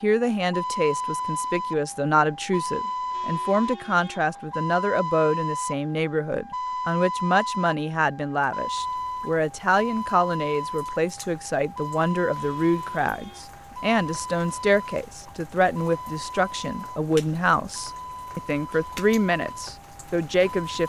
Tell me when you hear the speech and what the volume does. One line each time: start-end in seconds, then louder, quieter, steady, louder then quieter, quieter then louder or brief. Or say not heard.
0.0-20.8 steady.